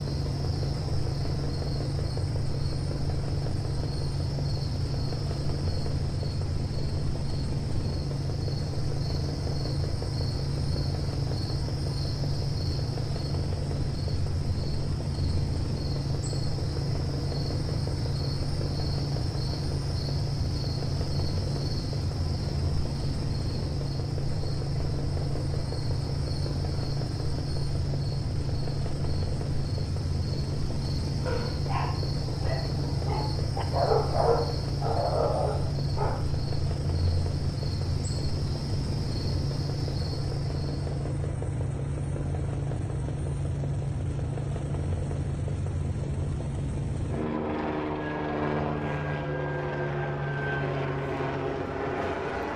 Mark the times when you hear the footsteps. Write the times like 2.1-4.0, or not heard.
not heard.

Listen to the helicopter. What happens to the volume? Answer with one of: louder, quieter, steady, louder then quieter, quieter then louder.
steady.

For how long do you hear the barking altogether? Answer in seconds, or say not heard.
5 s.